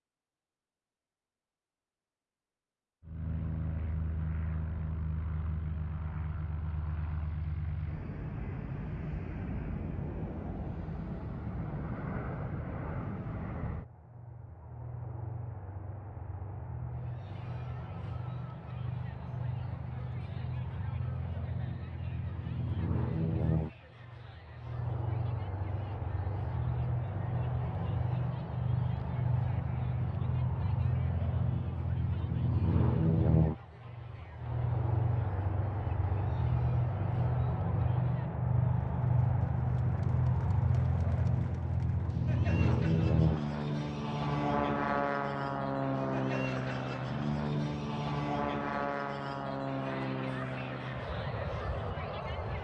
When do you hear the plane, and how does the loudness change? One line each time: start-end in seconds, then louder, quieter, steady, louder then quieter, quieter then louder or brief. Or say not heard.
3.0-52.5 louder.